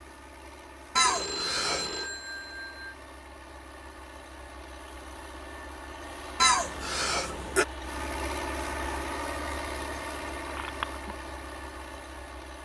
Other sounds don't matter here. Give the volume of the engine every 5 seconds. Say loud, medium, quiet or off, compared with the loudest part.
medium, loud, loud.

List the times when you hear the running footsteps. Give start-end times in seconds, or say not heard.
not heard.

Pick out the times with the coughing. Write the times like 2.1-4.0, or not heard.
0.9-1.9, 6.4-7.7.